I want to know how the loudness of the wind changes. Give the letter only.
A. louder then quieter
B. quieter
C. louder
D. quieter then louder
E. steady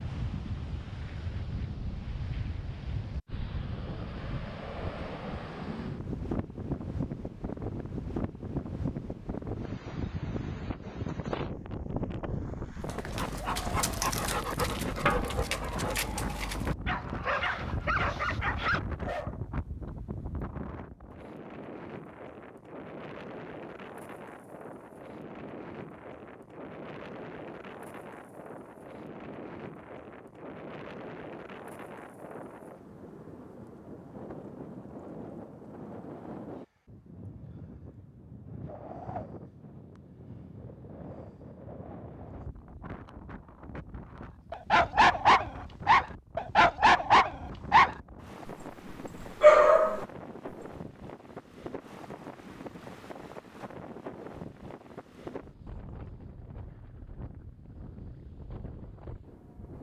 B.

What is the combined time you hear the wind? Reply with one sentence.
You can hear the wind for 60 seconds altogether.